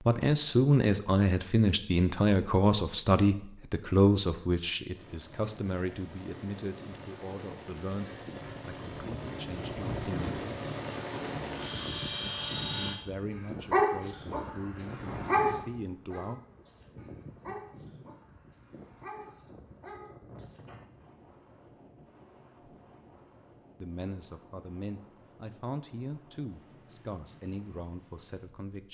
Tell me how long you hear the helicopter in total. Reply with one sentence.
The helicopter can be heard for 8 seconds in total.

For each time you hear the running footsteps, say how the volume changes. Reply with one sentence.
You can't hear the running footsteps here.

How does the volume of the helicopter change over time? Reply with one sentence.
The loudness of the helicopter goes up.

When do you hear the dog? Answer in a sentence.
You can hear the dog from 13.7 to 20.8 s.